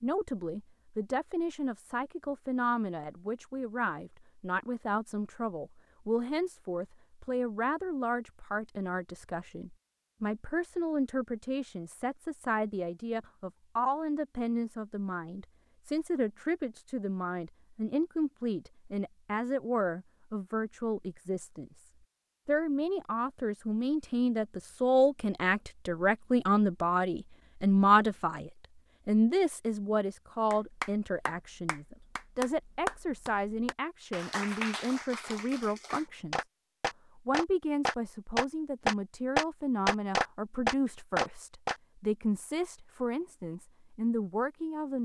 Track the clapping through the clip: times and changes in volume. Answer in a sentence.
You can hear the clapping from 30.5 to 41.8 s, getting louder.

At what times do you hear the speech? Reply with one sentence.
The speech can be heard from 0.0 to 36.5 s and from 37.1 to 44.9 s.